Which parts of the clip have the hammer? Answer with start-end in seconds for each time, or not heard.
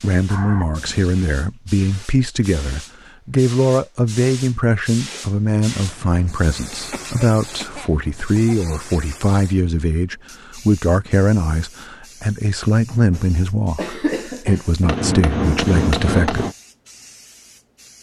14.8-16.6.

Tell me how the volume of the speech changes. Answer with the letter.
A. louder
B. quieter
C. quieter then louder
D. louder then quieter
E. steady
E.